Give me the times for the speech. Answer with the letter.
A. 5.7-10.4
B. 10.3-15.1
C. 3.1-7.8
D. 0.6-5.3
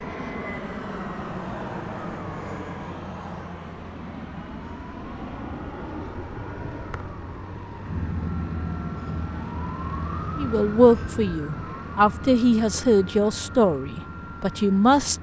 B.